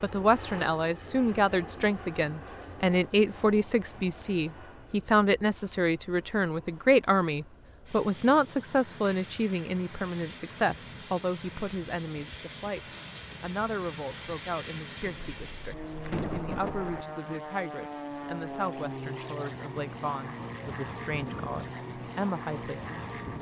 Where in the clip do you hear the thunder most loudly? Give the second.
16 s.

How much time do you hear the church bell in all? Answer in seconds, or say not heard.
not heard.